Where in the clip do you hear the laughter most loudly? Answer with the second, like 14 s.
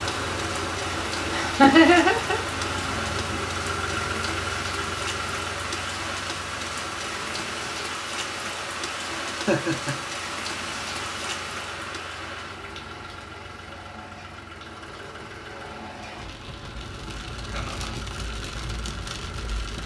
2 s.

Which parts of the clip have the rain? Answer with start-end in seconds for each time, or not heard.
0.0-19.8.